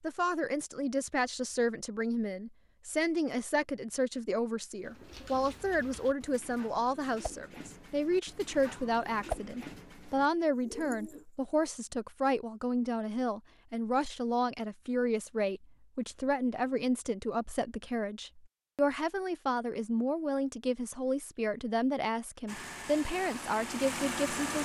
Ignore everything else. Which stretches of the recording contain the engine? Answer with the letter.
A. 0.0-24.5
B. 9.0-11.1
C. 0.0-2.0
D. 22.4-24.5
D.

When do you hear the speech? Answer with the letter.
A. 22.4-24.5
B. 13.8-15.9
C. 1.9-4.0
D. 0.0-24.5
D.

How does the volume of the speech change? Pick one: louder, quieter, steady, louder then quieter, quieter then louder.
steady.